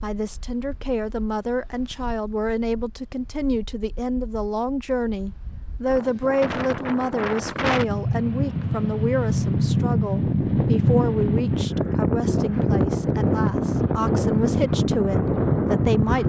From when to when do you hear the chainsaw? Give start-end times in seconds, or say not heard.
not heard.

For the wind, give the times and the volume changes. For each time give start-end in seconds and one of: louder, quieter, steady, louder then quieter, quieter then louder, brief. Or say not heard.
0.0-16.2 louder.